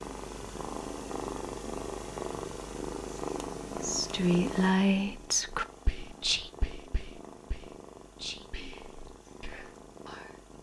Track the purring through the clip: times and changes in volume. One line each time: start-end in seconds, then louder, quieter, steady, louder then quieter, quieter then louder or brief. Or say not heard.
0.0-10.5 quieter.